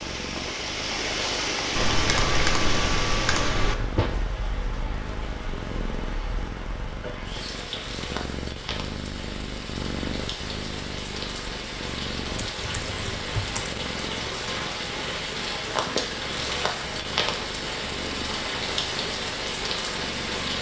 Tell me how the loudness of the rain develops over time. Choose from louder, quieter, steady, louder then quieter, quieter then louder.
quieter then louder.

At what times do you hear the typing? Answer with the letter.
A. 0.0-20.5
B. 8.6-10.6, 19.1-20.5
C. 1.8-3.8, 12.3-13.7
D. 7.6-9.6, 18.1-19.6
C.